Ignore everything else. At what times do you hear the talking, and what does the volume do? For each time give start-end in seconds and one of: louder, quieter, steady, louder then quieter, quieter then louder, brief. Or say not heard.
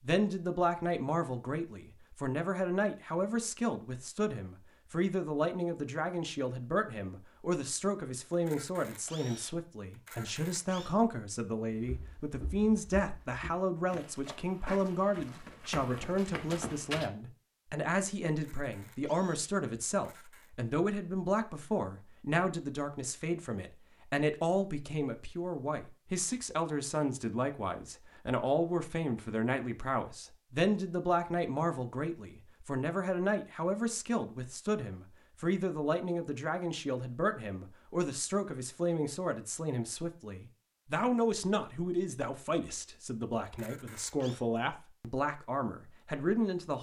0.0-46.7 steady.